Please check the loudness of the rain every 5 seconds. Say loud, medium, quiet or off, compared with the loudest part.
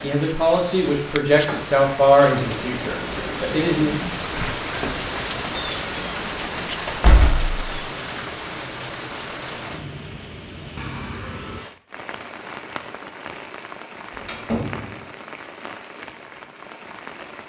loud, loud, medium, medium.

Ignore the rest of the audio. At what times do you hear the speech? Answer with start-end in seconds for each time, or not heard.
0.0-4.0.